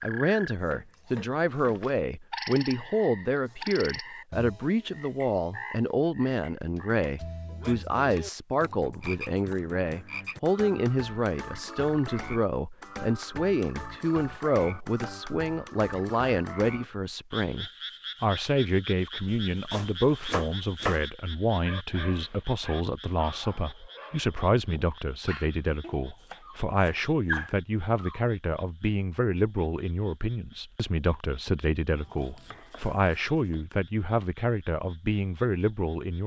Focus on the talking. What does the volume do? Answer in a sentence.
The loudness of the talking stays about the same.